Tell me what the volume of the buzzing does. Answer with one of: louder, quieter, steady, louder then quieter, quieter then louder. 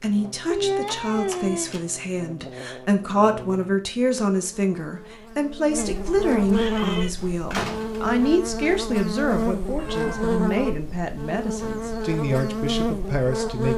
louder.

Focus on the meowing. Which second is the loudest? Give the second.
1 s.